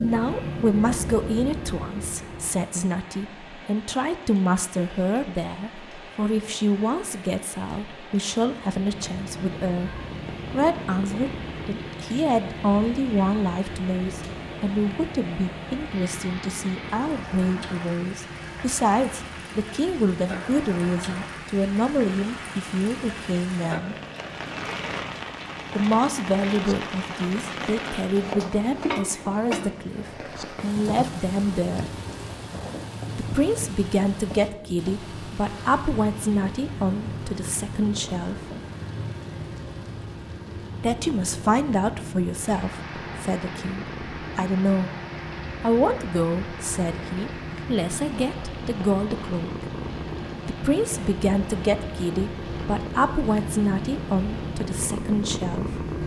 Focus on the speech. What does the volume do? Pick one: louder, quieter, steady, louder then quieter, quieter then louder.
steady.